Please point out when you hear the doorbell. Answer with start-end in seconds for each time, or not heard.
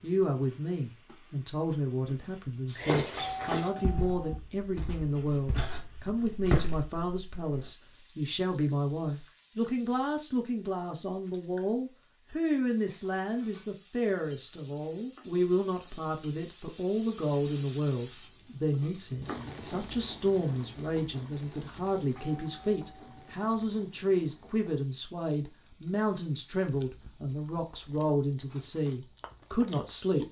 3.1-4.4, 22.1-23.1.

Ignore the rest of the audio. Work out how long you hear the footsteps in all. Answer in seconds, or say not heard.
5 s.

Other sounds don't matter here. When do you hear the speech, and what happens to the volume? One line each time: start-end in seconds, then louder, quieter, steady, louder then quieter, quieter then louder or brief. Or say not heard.
0.0-30.2 steady.